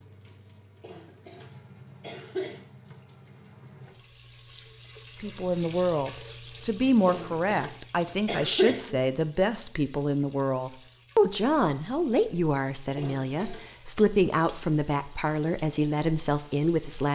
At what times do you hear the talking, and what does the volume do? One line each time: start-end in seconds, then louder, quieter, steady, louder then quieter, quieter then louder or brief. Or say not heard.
5.2-17.0 steady.